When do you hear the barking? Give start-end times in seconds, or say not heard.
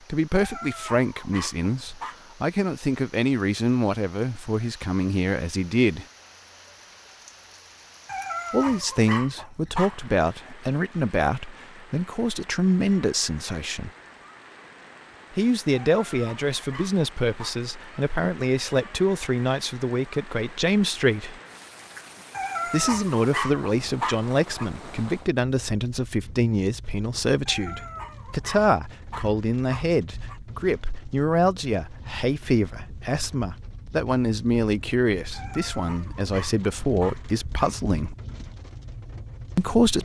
0.3-2.2, 8.1-10.1, 15.8-17.6, 22.3-24.7, 27.4-30.4, 35.3-37.8.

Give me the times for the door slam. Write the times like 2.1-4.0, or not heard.
not heard.